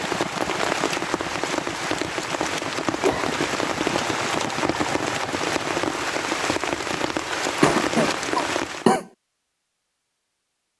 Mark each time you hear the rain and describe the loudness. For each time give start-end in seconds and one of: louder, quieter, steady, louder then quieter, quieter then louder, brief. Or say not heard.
0.0-8.9 steady.